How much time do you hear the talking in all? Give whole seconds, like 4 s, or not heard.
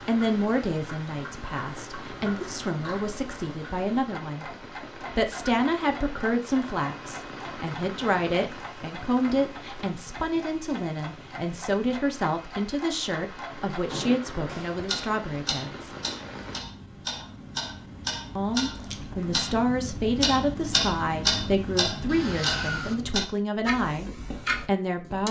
23 s.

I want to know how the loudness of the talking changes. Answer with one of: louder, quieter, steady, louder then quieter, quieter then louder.
steady.